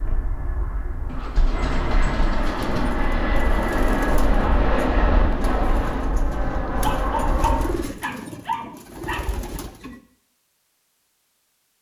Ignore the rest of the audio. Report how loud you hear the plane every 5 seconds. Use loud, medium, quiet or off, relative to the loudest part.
loud, loud, off.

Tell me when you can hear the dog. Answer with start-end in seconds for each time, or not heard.
1.1-3.0, 6.8-9.3.